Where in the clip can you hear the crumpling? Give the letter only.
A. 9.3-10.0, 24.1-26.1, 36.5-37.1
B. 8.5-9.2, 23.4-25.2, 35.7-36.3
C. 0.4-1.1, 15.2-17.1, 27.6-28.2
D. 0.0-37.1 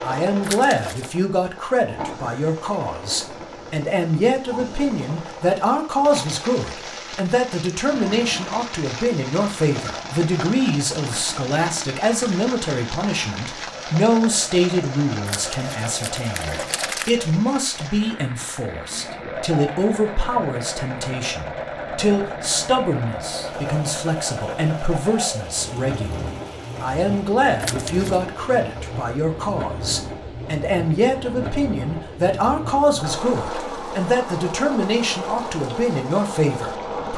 C.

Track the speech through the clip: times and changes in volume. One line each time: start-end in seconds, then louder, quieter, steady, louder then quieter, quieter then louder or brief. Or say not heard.
0.0-37.1 steady.